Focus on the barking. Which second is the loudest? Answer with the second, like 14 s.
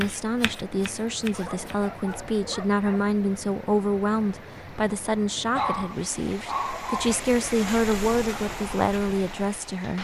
6 s.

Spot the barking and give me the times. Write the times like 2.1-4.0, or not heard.
1.3-3.1, 5.5-7.2.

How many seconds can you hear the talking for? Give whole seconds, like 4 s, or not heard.
10 s.